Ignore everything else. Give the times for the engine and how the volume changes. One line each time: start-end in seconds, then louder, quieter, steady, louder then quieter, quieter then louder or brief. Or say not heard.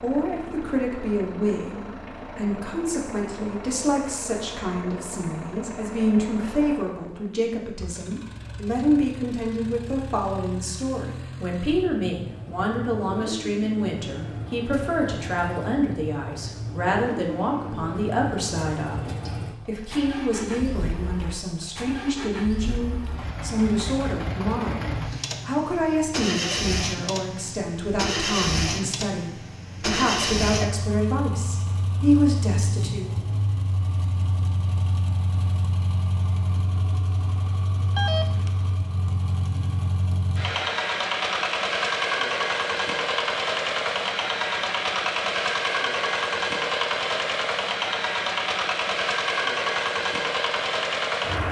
0.0-51.4 louder.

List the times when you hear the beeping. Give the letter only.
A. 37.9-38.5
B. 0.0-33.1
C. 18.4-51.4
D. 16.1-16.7
A.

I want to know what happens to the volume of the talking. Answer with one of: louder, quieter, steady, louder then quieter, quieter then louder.
steady.